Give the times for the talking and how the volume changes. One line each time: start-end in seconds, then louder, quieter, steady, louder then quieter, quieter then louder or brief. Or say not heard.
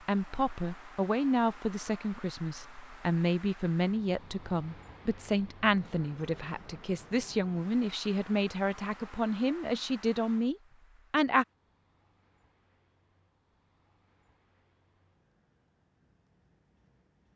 0.1-11.4 steady.